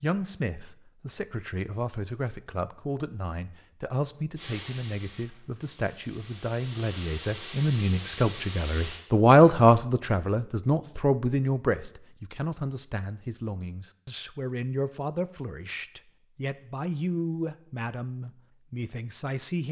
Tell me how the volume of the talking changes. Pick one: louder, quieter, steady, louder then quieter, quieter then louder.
louder then quieter.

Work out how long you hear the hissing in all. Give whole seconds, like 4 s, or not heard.
5 s.